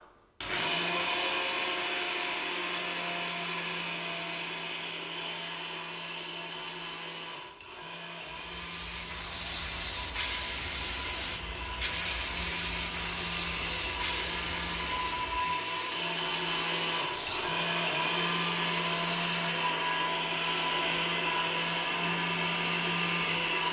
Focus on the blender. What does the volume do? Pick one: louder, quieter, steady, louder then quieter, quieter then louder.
quieter then louder.